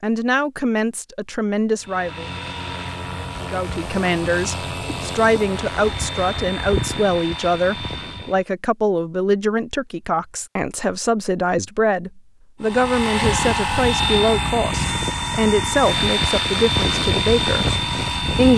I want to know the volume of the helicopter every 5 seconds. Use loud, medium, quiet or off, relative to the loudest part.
medium, medium, loud, loud.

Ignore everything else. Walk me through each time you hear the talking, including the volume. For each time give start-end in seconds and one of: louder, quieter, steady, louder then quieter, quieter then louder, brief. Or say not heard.
0.0-2.2 brief
3.4-18.5 steady.